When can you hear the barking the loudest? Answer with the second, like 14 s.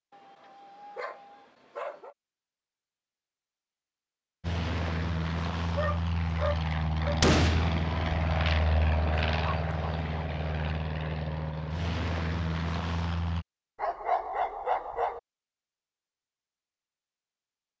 14 s.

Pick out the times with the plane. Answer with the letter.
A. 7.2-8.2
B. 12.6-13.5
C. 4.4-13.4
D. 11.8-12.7
C.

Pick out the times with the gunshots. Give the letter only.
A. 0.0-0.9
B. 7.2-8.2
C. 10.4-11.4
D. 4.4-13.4
B.